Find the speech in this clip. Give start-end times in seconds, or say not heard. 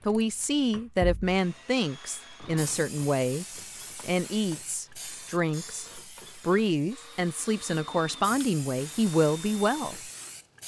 0.1-10.1.